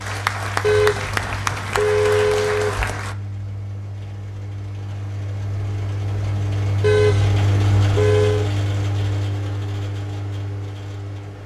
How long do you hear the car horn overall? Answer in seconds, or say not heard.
4 s.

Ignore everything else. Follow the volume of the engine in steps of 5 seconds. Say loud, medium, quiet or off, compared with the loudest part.
medium, loud, medium.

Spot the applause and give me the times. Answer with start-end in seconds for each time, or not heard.
0.0-3.1.